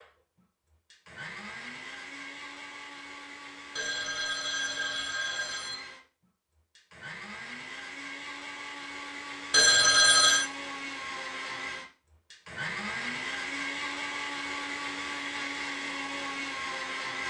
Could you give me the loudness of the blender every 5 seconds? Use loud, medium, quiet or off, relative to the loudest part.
medium, medium, loud, loud.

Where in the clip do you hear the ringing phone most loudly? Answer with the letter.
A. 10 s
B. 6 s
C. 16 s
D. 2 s
A.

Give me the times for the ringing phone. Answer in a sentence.
You can hear the ringing phone from 3.8 to 5.8 s and from 9.5 to 10.5 s.